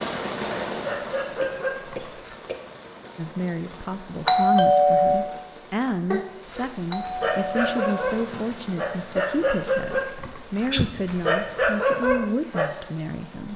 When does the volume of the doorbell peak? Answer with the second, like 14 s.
5 s.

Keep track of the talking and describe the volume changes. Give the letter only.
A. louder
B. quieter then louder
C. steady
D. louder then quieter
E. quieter
C.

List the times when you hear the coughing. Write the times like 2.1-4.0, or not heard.
1.4-3.0, 6.1-6.7, 10.2-10.9.